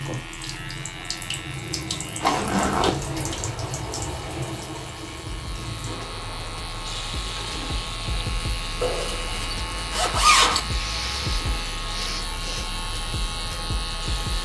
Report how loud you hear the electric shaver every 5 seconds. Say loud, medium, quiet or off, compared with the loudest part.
medium, loud, loud.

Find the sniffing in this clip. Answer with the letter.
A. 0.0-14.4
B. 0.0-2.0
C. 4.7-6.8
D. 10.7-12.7
D.